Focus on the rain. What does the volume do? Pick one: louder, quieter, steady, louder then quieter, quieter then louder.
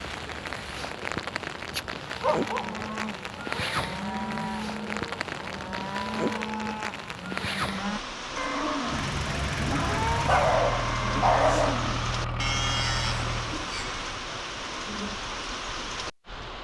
steady.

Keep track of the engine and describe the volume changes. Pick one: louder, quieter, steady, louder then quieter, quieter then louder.
steady.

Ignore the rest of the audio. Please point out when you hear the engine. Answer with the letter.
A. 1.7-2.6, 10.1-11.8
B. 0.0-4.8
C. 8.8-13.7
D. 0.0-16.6
C.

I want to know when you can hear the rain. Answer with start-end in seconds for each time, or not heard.
0.0-16.6.